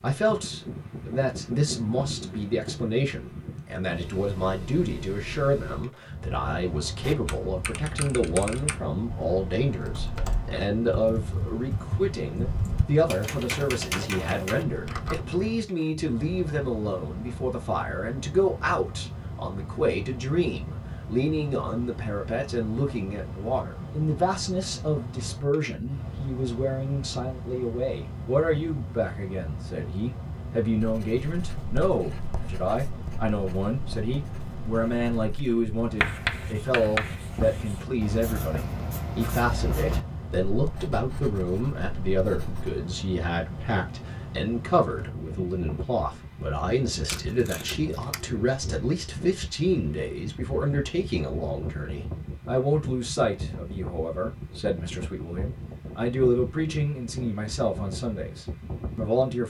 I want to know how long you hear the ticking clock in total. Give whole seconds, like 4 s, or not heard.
not heard.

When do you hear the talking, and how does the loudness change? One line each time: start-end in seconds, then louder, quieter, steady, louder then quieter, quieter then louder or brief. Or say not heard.
0.0-59.4 steady.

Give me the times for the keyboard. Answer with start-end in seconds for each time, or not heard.
7.0-15.2.